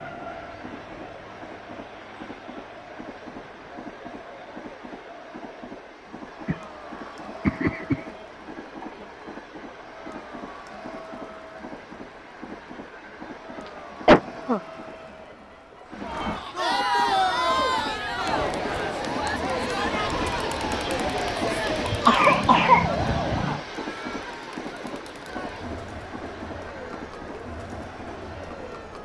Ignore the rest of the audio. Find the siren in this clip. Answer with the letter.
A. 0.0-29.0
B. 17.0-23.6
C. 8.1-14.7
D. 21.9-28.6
B.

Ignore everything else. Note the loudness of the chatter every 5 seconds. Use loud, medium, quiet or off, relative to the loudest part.
quiet, quiet, quiet, loud, medium, quiet.